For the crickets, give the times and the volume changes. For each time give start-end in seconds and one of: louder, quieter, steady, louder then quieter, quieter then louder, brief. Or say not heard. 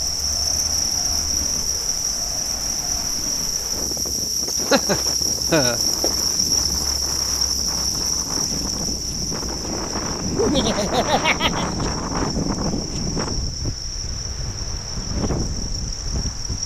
0.0-16.6 quieter.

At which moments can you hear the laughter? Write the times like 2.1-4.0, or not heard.
4.5-5.8, 10.3-11.7.